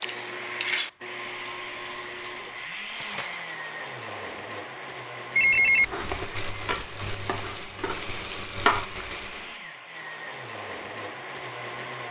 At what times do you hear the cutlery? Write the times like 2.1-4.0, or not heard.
0.0-3.5.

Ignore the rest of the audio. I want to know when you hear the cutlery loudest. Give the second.
1 s.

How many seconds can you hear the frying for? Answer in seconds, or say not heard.
4 s.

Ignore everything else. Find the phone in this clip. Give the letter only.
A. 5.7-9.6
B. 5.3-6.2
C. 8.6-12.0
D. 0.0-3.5
B.